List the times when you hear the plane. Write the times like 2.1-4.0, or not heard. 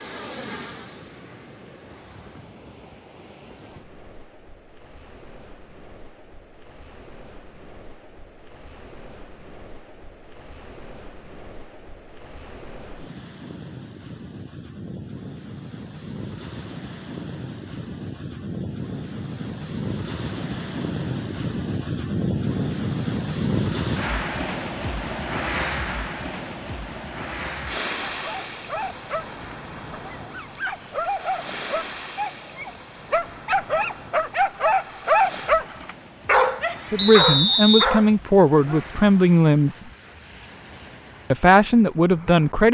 0.0-2.5.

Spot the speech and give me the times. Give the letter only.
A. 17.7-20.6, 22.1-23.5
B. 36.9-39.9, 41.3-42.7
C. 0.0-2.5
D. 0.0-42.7
B.